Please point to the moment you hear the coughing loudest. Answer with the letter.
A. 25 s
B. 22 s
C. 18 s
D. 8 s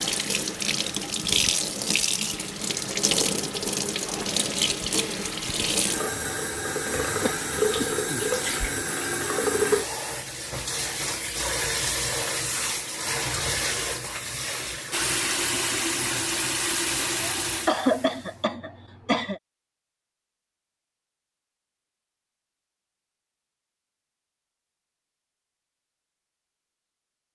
C.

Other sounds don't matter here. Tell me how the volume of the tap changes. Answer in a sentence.
The loudness of the tap stays about the same.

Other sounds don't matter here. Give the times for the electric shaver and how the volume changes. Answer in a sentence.
The electric shaver can't be heard in this clip.